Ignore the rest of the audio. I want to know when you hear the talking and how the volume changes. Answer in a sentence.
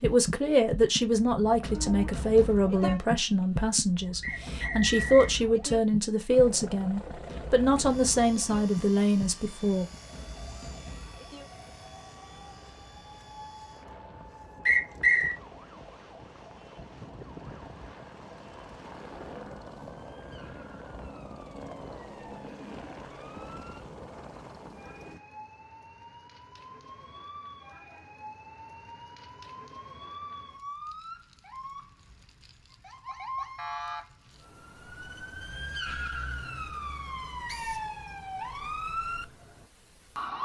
You can hear the talking from 0.0 to 9.8 s, at a steady volume.